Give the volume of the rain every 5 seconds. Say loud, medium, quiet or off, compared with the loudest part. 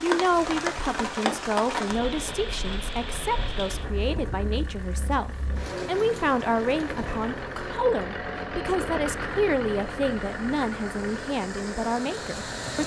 loud, medium, medium.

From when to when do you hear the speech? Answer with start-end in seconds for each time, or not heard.
0.0-12.8.